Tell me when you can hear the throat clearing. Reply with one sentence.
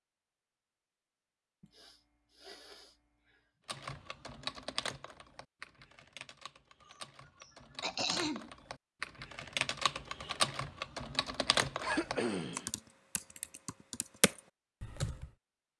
You can hear the throat clearing from 1.6 to 3.5 s, from 7.4 to 8.5 s and from 11.8 to 12.7 s.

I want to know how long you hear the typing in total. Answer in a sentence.
You can hear the typing for 12 seconds altogether.